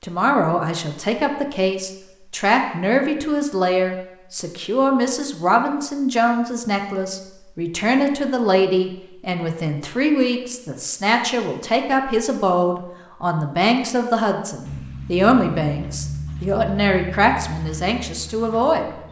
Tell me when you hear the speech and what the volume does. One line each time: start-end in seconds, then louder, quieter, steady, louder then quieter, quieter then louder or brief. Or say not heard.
0.0-18.9 steady.